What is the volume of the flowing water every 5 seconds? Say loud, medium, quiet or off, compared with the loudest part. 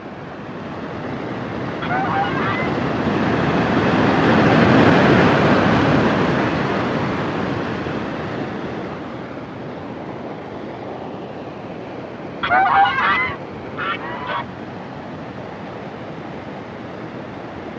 loud, loud, quiet, quiet.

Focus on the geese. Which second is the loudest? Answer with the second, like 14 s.
13 s.